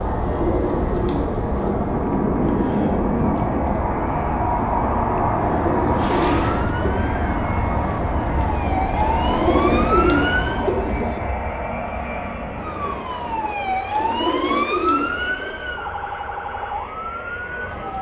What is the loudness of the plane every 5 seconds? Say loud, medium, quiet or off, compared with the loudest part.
loud, loud, medium, quiet.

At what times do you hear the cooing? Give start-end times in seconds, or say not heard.
0.2-1.9, 5.4-7.2, 9.2-11.2, 14.0-15.5.